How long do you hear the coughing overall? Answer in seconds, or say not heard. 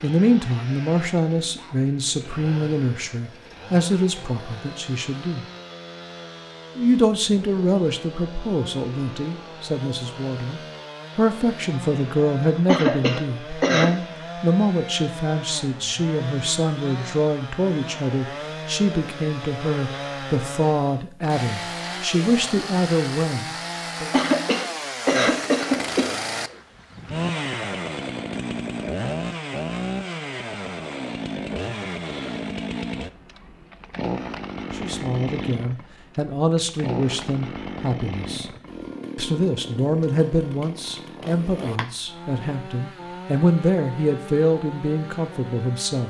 3 s.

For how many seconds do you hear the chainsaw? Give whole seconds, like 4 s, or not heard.
46 s.